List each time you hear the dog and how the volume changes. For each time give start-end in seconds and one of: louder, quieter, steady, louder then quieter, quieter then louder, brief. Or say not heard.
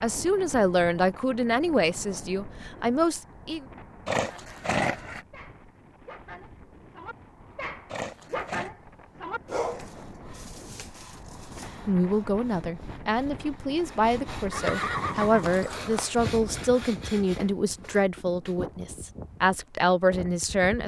4.1-11.8 louder then quieter.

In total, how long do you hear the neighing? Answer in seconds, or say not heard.
4 s.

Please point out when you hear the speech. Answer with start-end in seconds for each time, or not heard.
0.0-3.6, 11.8-20.8.